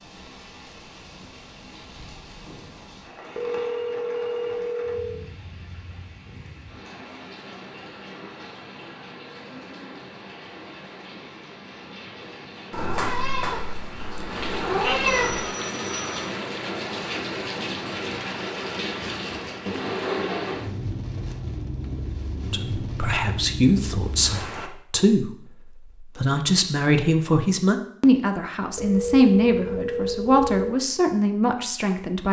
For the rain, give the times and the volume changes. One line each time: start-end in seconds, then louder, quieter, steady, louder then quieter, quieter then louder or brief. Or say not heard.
0.0-24.7 louder.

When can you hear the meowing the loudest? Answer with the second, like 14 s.
15 s.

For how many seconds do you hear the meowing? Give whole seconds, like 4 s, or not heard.
3 s.